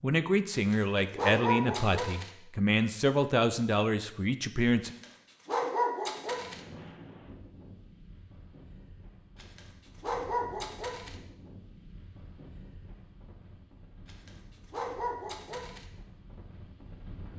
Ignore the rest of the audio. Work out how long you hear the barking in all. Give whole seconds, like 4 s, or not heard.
7 s.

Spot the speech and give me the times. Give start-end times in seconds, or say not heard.
0.0-5.0.